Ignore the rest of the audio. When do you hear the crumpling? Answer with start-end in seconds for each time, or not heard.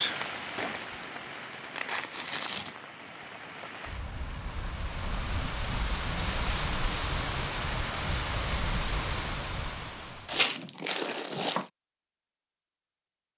0.6-2.8, 6.0-7.1, 10.2-11.7.